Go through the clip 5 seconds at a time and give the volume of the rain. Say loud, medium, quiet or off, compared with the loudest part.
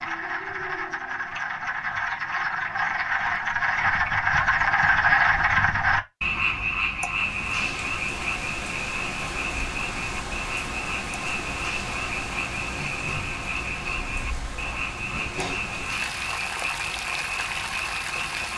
off, loud, loud, loud.